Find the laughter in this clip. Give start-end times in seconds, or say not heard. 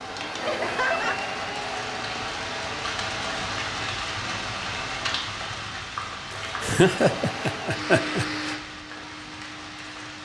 0.4-1.2, 6.6-8.2.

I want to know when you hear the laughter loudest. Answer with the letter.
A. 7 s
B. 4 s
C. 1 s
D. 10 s
A.